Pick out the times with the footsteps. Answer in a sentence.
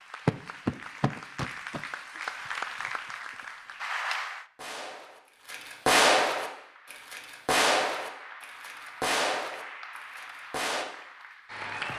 The footsteps can't be heard in this clip.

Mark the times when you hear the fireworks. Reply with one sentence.
You can hear the fireworks from 4.5 to 10.8 s.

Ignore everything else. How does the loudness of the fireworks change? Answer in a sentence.
The loudness of the fireworks goes down.